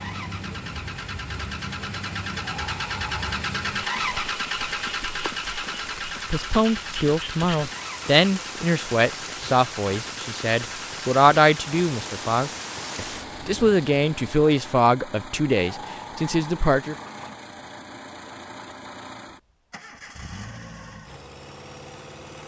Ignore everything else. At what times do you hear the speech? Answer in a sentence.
You can hear the speech from 6.3 to 16.9 s.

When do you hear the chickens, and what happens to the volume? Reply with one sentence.
The chickens can't be heard in this clip.